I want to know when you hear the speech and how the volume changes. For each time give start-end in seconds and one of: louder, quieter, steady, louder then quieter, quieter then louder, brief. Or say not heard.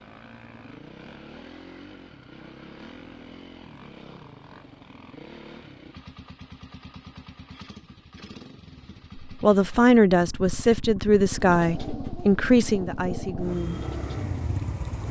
9.2-13.8 quieter.